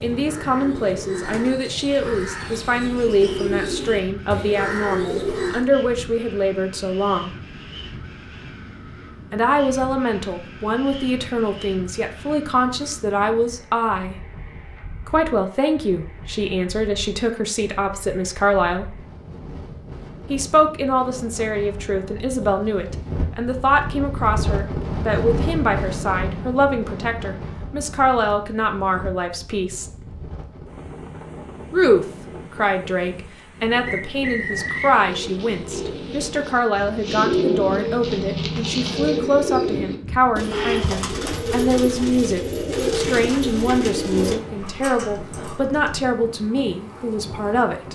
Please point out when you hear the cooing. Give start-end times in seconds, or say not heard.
0.0-5.7, 34.5-46.0.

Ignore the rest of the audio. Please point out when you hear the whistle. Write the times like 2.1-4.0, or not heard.
33.9-35.0.